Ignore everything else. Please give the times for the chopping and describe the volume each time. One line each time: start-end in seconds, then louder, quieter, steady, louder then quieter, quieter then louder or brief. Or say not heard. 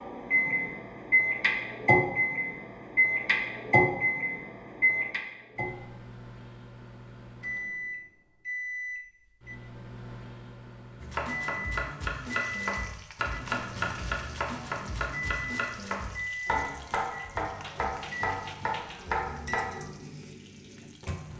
11.0-19.9 steady.